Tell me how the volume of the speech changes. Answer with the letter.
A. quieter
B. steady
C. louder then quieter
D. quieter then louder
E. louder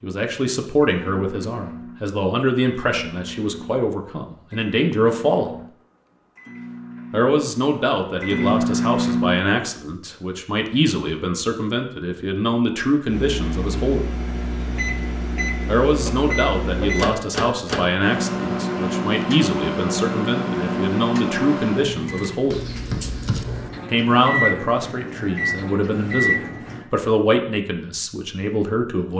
B.